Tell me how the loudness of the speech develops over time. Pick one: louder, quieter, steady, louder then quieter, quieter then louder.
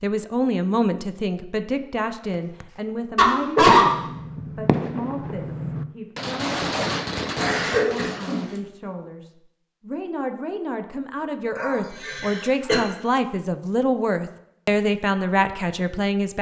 quieter then louder.